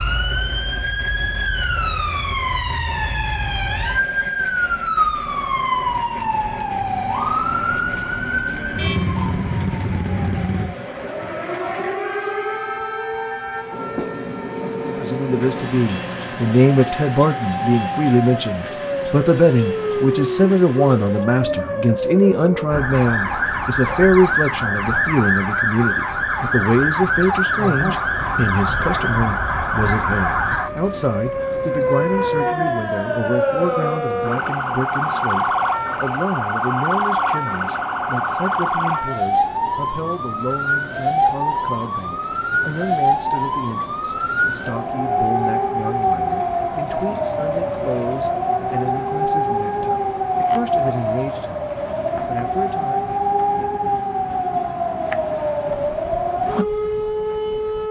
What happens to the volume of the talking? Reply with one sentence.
The volume of the talking goes down.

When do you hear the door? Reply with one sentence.
The door can't be heard in this clip.